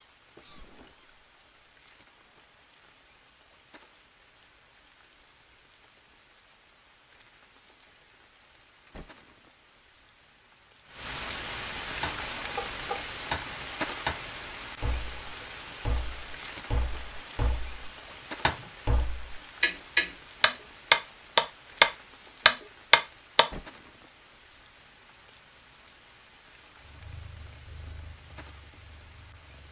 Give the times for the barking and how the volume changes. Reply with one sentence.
You can't hear the barking here.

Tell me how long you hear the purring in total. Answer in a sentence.
The purring can be heard for 3 seconds in total.